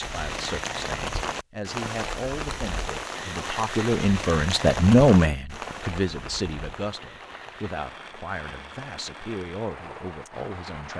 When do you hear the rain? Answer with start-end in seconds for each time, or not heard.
0.0-10.9.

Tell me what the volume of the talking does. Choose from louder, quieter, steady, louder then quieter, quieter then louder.
louder then quieter.